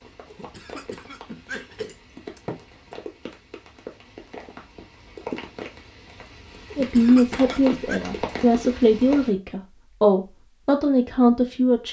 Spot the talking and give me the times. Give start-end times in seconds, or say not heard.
6.8-11.8.